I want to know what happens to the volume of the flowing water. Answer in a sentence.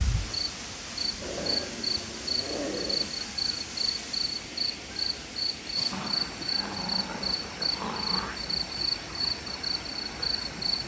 The volume of the flowing water stays about the same.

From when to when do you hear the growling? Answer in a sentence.
The growling can be heard from 1.2 to 3.1 s and from 5.9 to 8.4 s.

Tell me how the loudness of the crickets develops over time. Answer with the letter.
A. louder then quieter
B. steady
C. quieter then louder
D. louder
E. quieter
B.